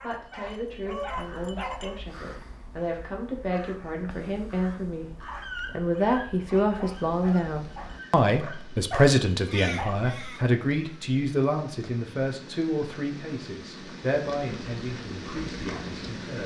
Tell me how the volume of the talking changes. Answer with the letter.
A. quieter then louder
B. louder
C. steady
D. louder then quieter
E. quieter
D.